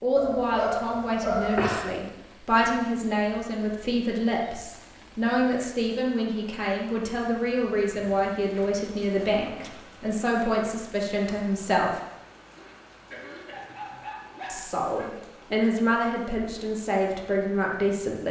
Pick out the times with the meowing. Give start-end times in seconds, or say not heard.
not heard.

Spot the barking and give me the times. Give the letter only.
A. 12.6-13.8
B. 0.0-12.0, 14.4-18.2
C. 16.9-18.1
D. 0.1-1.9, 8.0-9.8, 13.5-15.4
D.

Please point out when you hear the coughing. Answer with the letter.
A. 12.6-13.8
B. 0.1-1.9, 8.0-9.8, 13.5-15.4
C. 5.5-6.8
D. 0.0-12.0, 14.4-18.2
A.